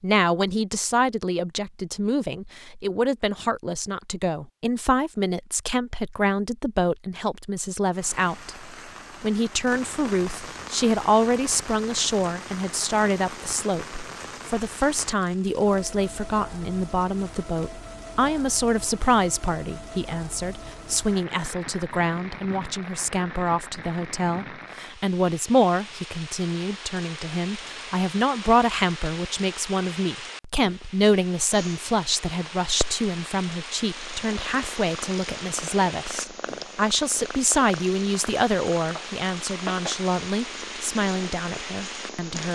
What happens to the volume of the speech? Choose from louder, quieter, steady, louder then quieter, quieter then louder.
steady.